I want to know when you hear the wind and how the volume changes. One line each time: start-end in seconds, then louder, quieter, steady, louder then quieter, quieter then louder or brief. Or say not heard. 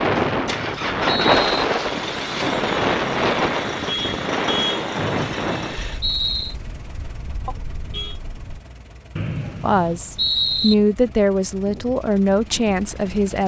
0.0-8.6 quieter.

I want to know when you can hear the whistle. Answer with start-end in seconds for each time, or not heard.
0.0-1.6, 5.0-6.5, 9.2-10.8.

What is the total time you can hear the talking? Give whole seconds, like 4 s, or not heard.
4 s.